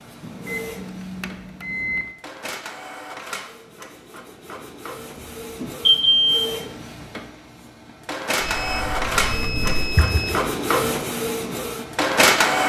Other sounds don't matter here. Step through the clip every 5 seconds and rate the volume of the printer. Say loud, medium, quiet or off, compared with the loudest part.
quiet, medium, loud.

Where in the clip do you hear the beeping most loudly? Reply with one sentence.
The volume of the beeping peaks at 6 seconds.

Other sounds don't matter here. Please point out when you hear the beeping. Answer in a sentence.
You can hear the beeping from 0.2 to 2.0 s, from 5.6 to 6.5 s and from 8.4 to 10.3 s.